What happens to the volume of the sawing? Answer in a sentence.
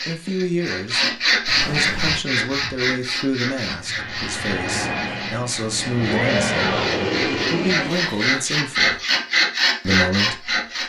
The loudness of the sawing goes down, then up.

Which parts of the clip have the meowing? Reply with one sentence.
The meowing can be heard from 1.4 to 2.2 s and from 6.0 to 6.9 s.